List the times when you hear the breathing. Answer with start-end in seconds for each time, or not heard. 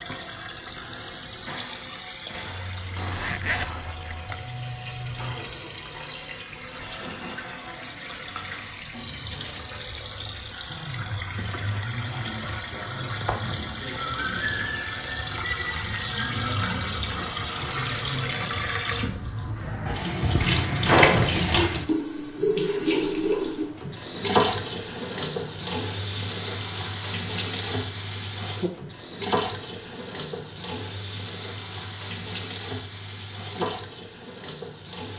not heard.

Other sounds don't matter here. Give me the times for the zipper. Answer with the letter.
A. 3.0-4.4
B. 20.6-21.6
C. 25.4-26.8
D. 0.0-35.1
A.